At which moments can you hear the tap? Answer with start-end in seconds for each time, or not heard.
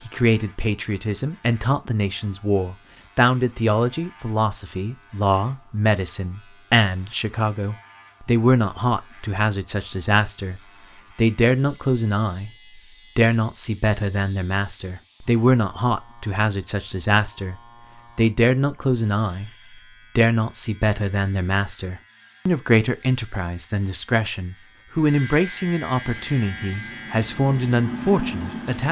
26.0-28.8.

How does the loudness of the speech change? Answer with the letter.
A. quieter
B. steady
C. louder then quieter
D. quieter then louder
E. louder
B.